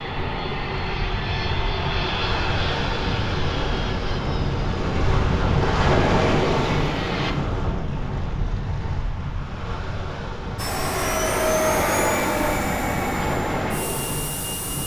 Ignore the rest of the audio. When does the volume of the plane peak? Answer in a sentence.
The volume of the plane peaks at 12 seconds.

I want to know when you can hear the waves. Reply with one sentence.
You can hear the waves from 0.0 to 14.8 s.